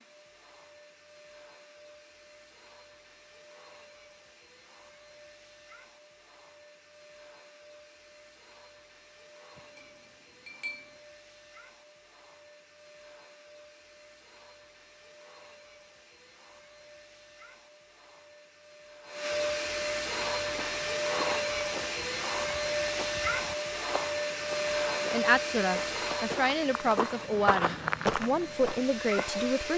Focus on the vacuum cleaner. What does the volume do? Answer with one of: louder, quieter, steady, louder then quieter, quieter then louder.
louder.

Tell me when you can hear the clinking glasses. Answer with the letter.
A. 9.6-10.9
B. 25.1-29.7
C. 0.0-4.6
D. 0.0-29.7
A.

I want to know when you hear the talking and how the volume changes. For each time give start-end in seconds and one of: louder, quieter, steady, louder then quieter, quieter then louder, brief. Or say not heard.
25.1-29.7 steady.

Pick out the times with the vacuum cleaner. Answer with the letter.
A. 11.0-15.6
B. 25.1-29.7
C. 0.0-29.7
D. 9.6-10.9
C.